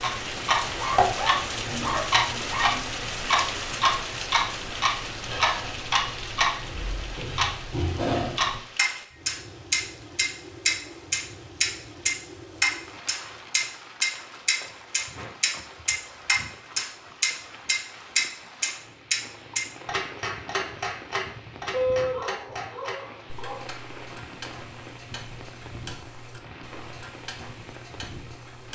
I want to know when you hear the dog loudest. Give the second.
22 s.